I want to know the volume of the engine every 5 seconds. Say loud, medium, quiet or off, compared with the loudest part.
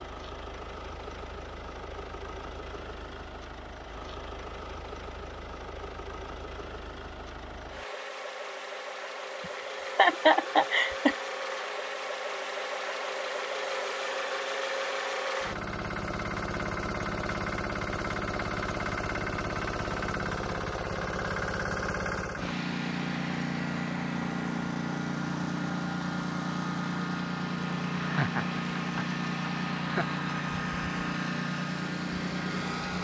medium, medium, loud, loud, loud, loud, loud.